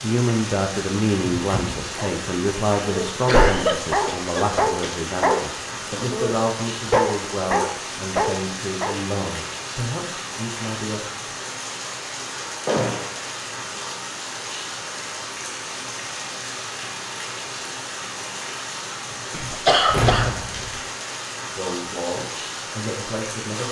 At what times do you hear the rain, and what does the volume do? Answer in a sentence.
You can hear the rain from 0.0 to 23.6 s, at a steady volume.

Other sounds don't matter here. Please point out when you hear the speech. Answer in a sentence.
The speech can be heard from 0.0 to 11.3 s and from 21.5 to 23.6 s.